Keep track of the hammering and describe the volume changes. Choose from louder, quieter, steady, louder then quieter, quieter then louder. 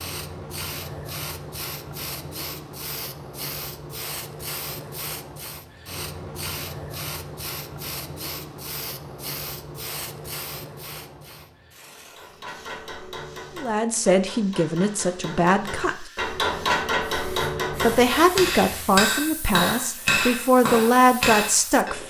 louder.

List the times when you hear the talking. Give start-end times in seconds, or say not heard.
13.6-16.1, 17.7-22.0.